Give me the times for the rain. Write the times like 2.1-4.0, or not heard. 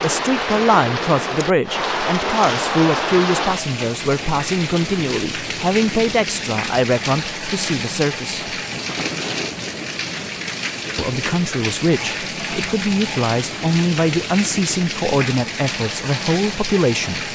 0.0-17.3.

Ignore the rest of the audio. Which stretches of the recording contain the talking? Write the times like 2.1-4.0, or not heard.
0.0-8.6, 10.9-17.3.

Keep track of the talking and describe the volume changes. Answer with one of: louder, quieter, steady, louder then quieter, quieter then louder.
steady.